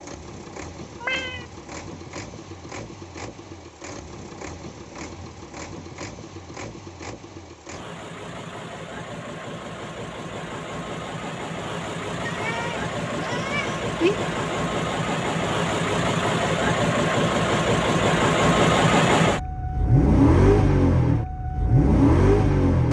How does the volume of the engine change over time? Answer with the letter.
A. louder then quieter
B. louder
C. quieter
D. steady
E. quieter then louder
B.